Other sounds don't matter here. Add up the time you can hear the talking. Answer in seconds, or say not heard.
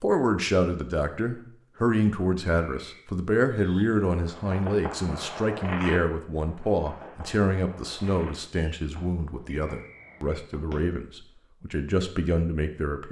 13 s.